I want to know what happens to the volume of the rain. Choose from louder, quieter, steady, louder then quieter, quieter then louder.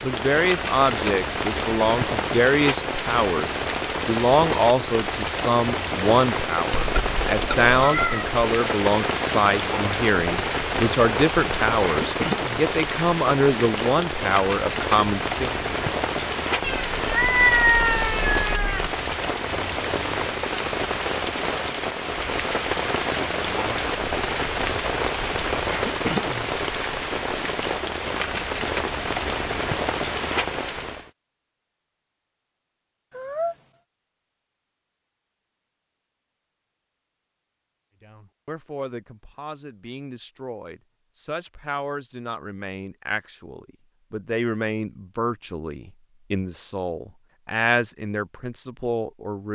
steady.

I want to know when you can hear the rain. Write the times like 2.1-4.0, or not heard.
0.0-31.1.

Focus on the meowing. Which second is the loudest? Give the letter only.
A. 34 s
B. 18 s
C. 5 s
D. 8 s
B.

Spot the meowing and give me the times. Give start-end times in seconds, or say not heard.
6.7-8.4, 16.6-18.9, 33.1-33.5.